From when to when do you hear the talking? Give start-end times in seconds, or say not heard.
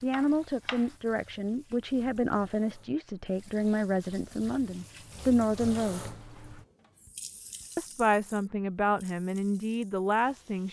0.0-6.1, 7.8-10.6.